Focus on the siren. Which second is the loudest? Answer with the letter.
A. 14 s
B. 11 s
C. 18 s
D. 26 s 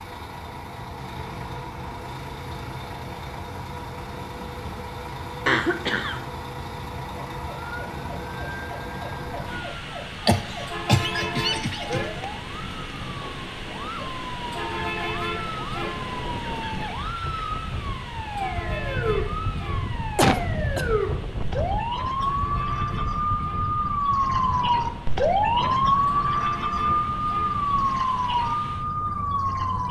D.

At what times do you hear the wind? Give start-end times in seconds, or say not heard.
7.9-29.8.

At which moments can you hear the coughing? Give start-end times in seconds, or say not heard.
5.5-6.2, 10.2-12.2, 20.1-20.9.